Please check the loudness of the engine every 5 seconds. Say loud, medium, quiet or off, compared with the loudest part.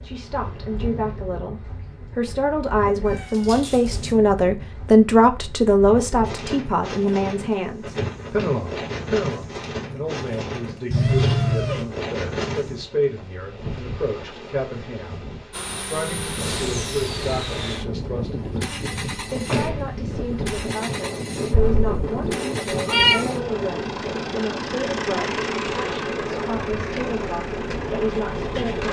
off, off, off, loud, loud, loud.